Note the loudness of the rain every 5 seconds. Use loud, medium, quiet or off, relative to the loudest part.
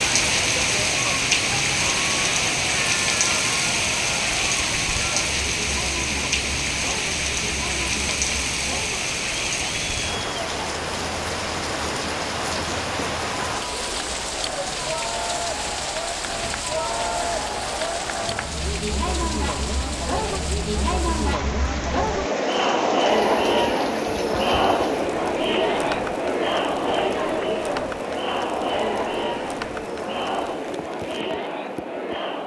loud, loud, medium, medium, quiet, quiet, quiet.